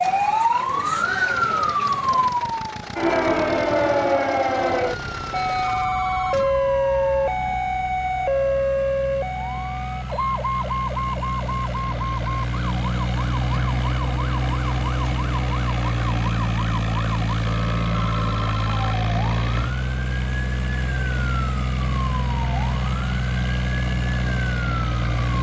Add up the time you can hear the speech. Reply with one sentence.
The speech can't be heard in this clip.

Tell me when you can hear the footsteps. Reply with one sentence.
You can't hear the footsteps here.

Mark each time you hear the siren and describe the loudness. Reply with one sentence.
You can hear the siren from 0.0 to 25.3 s, getting quieter.